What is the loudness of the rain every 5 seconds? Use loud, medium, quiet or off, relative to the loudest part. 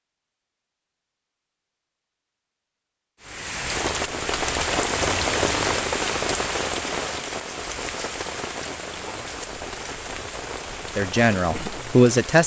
loud, loud, medium.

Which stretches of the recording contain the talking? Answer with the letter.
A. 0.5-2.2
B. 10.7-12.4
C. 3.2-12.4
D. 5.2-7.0
B.